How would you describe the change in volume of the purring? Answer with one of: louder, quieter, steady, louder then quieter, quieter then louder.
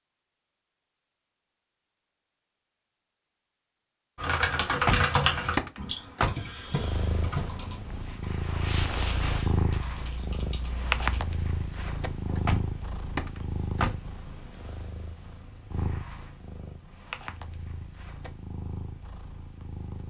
quieter.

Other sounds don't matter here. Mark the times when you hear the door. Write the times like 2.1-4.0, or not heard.
4.7-6.3, 12.2-13.9.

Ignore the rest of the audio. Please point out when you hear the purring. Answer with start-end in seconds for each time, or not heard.
6.7-20.0.